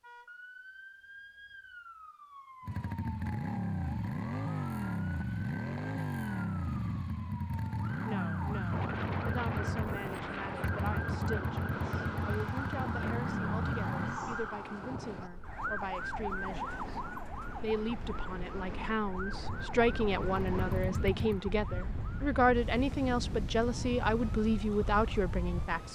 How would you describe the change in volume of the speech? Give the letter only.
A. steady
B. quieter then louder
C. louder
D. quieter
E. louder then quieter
C.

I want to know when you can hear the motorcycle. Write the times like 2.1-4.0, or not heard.
2.6-14.2, 19.4-21.4.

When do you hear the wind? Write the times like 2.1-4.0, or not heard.
8.7-25.9.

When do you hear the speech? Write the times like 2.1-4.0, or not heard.
8.1-25.9.